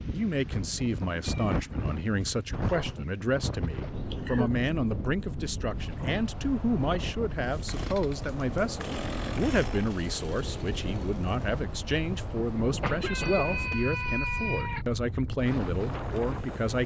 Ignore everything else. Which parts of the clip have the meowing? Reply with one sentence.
You can hear the meowing from 1.2 to 3.0 s and from 13.0 to 14.8 s.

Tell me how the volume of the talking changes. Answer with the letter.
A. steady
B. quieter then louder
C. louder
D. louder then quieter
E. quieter
A.